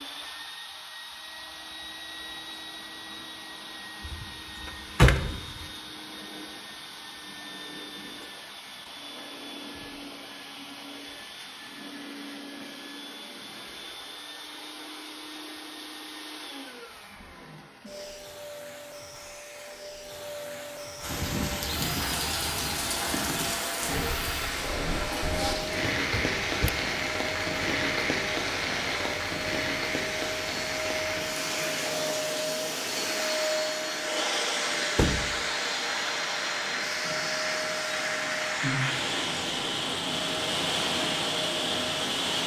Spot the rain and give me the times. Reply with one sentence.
The rain can be heard from 21.0 to 42.4 s.